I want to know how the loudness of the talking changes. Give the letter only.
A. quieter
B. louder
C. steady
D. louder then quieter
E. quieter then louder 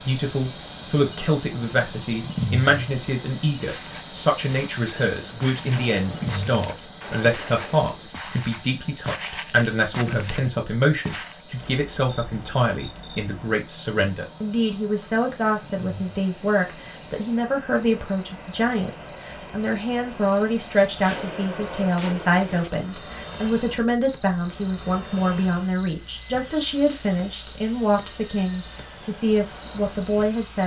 C.